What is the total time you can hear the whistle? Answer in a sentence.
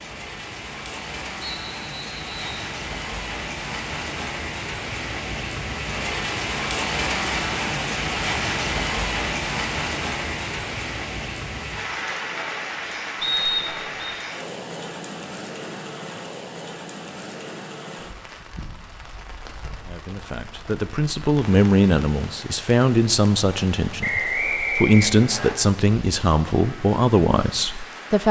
You can hear the whistle for 4 seconds altogether.